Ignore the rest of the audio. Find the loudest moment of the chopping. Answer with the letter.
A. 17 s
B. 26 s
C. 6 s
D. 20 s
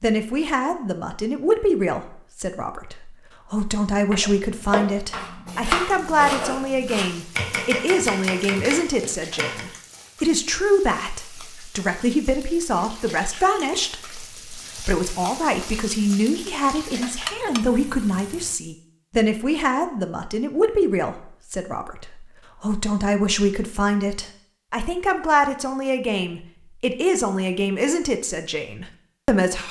C.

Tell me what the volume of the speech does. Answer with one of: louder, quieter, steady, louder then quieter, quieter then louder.
steady.